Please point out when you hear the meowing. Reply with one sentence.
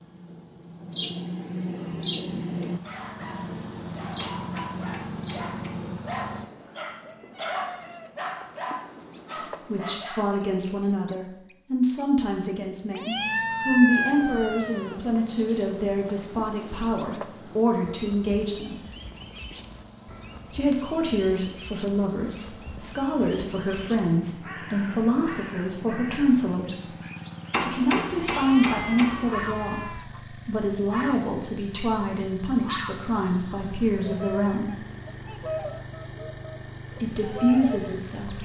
You can hear the meowing from 7.0 to 8.2 s, from 12.9 to 15.0 s and from 28.1 to 30.1 s.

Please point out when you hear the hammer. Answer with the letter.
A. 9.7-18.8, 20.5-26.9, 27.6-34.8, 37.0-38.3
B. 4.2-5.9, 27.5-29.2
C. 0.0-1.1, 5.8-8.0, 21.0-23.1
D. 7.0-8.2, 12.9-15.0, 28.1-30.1
B.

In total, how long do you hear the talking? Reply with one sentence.
The talking can be heard for 24 seconds in total.